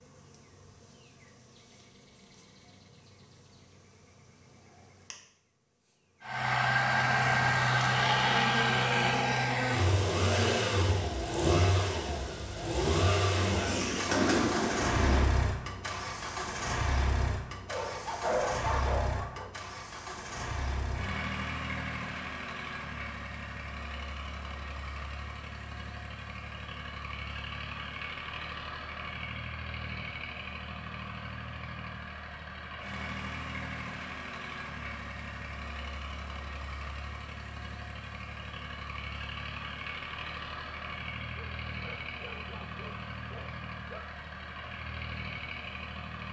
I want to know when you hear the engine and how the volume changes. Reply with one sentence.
You can hear the engine from 6.2 to 46.2 s, getting quieter.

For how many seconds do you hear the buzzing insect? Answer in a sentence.
The buzzing insect can be heard for 11 seconds in total.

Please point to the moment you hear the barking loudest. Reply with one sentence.
The loudest moment of the barking is at 18 seconds.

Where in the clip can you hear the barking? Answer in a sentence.
The barking can be heard from 17.6 to 19.5 s and from 41.4 to 44.0 s.